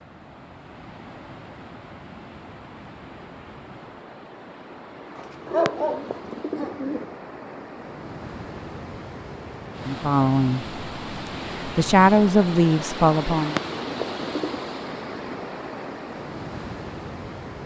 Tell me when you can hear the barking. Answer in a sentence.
The barking can be heard from 5.5 to 7.1 s.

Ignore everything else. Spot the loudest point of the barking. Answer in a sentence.
The loudest moment of the barking is at 6 seconds.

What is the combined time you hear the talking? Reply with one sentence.
You can hear the talking for 3 seconds altogether.